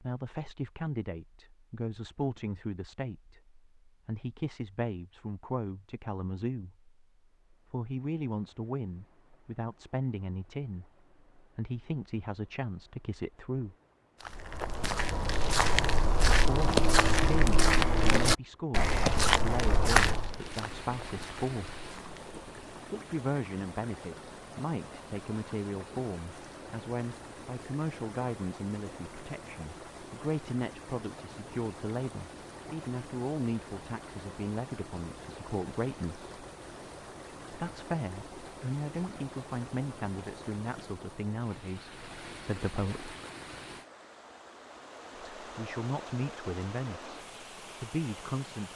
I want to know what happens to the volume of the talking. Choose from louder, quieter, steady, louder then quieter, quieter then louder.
steady.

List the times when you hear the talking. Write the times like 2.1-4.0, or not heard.
0.0-13.8, 16.2-21.8, 22.9-36.3, 37.5-43.1, 45.4-48.7.